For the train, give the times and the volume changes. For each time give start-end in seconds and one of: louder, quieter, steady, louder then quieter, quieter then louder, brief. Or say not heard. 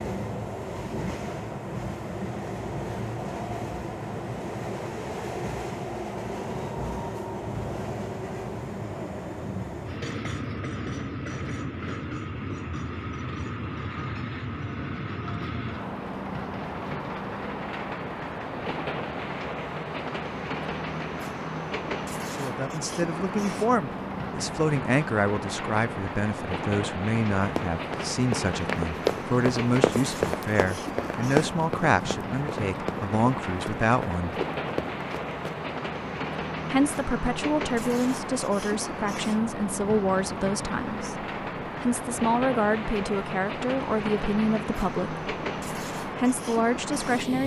0.0-47.4 steady.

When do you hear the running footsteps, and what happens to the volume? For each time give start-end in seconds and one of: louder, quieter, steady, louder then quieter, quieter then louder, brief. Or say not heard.
27.6-35.5 quieter.